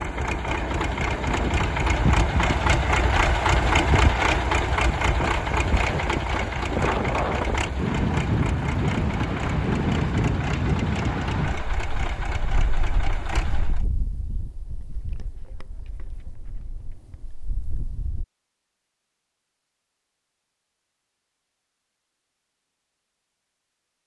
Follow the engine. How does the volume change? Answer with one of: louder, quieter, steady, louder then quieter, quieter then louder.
quieter.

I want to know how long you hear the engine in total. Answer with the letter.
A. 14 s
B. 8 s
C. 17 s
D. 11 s
A.